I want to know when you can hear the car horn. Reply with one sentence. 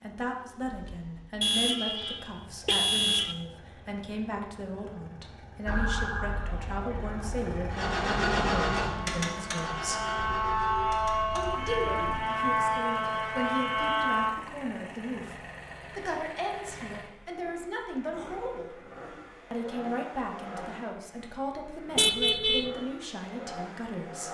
The car horn can be heard from 1.4 to 3.4 s, from 10.2 to 12.0 s and from 21.9 to 22.7 s.